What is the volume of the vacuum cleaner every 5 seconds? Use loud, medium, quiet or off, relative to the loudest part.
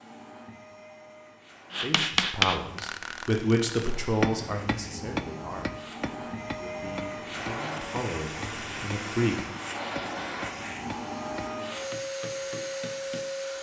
quiet, loud, loud.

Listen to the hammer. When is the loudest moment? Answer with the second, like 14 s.
2 s.